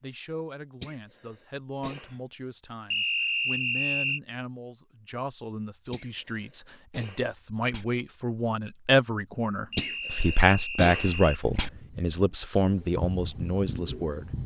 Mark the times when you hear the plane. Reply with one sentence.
You can't hear the plane here.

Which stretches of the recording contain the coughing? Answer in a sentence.
You can hear the coughing from 0.8 to 2.2 s, from 5.9 to 7.8 s and from 9.8 to 11.7 s.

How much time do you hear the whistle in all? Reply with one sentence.
You can hear the whistle for 3 seconds altogether.